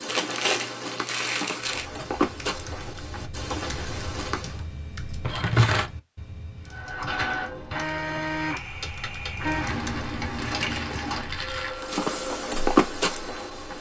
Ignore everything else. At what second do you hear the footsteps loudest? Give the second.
13 s.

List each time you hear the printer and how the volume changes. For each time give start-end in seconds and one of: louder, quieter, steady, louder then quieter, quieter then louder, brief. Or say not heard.
6.7-13.7 quieter.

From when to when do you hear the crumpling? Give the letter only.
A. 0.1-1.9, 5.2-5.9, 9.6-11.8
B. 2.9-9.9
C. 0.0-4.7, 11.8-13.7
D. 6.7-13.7
A.